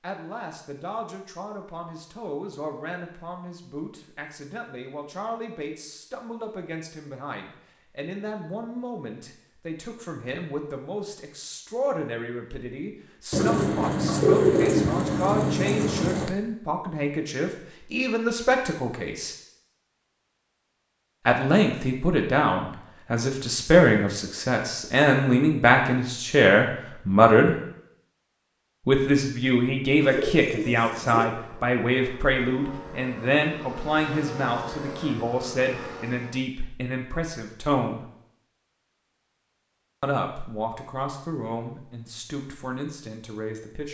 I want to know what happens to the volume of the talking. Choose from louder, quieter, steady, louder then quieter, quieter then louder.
louder then quieter.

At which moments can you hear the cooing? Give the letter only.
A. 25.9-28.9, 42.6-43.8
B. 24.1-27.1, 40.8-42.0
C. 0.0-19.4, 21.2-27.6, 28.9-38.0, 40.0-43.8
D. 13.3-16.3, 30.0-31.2
D.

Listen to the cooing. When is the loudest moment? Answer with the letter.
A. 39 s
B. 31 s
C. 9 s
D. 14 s
D.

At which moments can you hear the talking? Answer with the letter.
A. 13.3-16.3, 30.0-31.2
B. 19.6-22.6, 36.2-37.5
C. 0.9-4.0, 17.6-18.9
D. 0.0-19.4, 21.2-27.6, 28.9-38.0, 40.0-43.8
D.